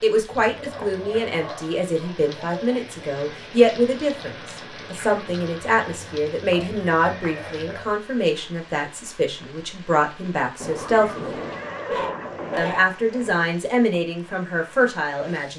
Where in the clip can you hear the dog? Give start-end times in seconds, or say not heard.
0.6-2.8, 6.5-8.0, 11.8-13.4.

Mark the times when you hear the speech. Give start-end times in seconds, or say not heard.
0.0-11.4, 12.6-15.5.